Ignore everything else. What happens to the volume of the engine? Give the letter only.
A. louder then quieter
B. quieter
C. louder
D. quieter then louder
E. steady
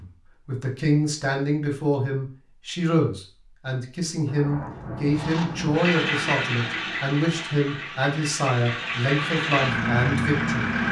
D.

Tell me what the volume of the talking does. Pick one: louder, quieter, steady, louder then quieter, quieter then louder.
steady.